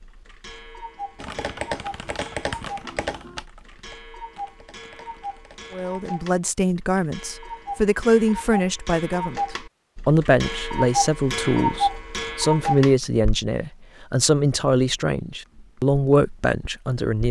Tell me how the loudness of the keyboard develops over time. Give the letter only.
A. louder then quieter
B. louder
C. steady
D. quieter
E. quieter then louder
D.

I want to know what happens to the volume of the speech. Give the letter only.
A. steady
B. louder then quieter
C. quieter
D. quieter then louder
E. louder
A.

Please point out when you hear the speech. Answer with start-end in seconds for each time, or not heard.
5.7-17.2.